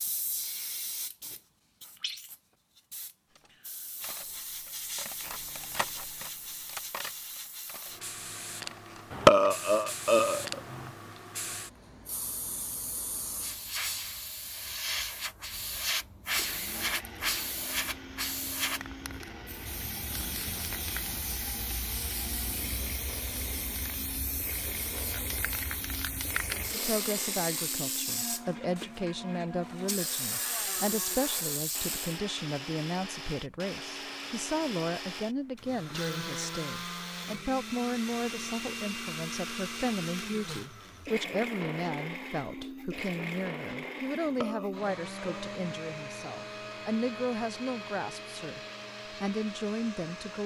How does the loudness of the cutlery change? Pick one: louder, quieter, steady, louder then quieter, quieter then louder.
louder then quieter.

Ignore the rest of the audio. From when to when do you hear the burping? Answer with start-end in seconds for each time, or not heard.
9.1-10.9, 44.2-45.5.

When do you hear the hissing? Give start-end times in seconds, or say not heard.
0.0-32.2.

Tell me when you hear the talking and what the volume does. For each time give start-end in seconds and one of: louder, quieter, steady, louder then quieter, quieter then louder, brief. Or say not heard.
26.7-50.4 steady.